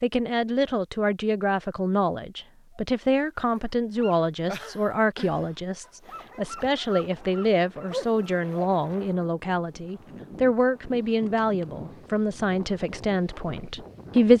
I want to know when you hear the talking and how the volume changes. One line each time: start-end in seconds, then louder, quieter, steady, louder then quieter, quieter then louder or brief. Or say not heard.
0.0-14.3 steady.